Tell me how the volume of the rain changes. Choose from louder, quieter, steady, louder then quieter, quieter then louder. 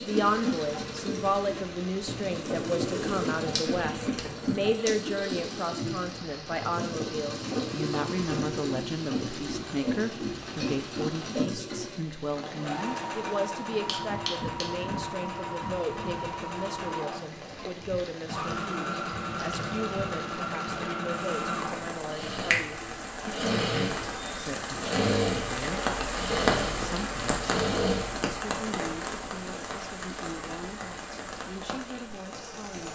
louder.